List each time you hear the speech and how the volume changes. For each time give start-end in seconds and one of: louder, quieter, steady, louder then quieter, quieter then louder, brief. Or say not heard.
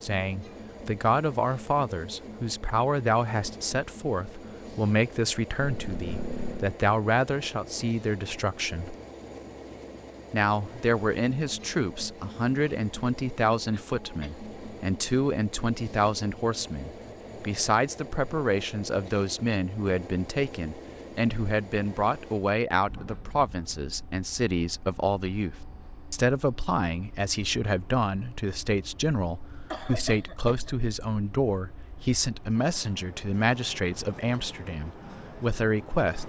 0.0-8.9 steady
10.3-36.2 steady.